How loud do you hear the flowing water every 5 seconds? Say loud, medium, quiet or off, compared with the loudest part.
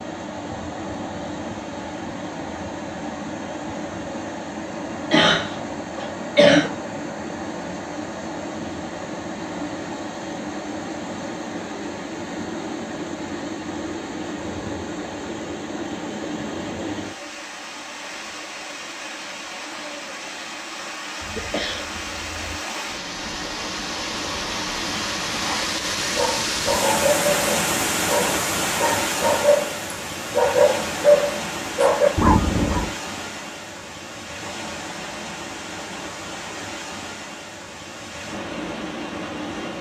medium, medium, medium, medium, medium, loud, medium, medium.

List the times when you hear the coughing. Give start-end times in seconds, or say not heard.
5.1-6.7, 21.2-22.6.